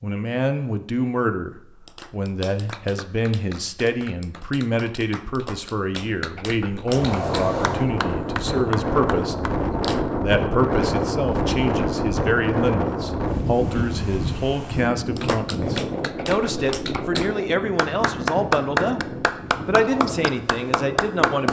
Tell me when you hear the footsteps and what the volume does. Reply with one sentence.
The footsteps can't be heard in this clip.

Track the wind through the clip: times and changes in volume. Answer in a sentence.
The wind can be heard from 6.8 to 21.4 s, getting quieter.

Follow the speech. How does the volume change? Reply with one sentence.
The volume of the speech stays about the same.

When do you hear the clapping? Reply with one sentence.
You can hear the clapping from 1.8 to 10.1 s and from 15.2 to 21.4 s.